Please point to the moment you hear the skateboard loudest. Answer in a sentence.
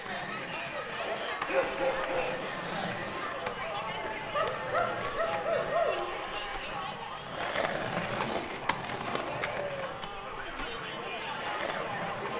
The loudest moment of the skateboard is at 8 seconds.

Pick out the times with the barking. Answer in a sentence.
You can hear the barking from 0.9 to 2.5 s, from 4.3 to 6.2 s and from 8.6 to 9.8 s.